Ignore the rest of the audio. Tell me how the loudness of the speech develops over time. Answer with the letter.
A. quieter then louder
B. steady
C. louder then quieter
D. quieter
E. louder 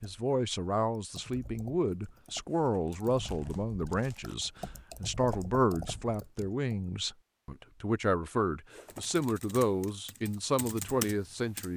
B.